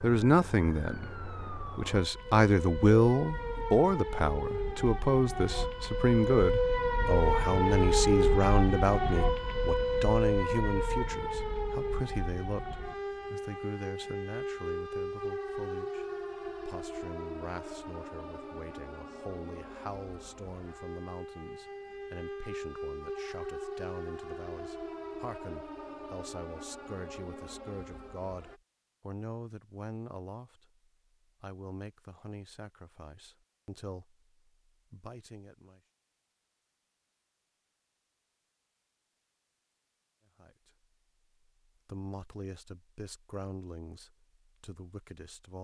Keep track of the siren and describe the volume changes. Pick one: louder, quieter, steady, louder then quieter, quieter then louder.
louder then quieter.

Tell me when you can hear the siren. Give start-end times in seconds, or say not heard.
0.0-28.6.